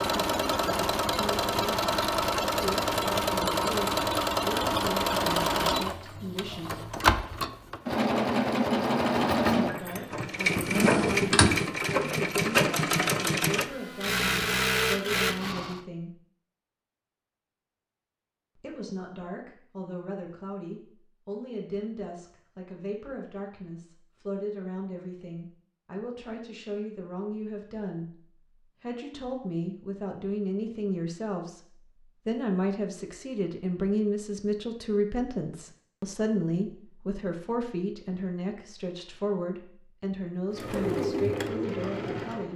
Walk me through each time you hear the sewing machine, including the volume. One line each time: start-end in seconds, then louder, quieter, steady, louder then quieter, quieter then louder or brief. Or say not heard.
0.0-15.8 steady
40.5-42.5 brief.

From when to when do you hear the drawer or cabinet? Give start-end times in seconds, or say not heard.
10.6-11.7.